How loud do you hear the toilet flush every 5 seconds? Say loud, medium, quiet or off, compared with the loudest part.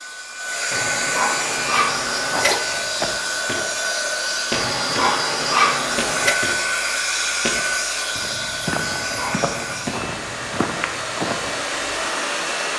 loud, loud, off.